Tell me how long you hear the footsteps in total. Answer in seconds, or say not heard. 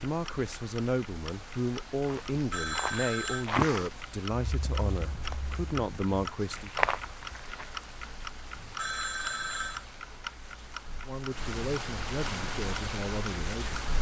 6 s.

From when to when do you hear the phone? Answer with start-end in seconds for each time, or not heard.
2.5-3.5, 8.8-9.8.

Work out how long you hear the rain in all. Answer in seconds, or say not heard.
14 s.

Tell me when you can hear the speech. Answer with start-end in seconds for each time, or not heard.
0.0-6.7, 11.1-13.8.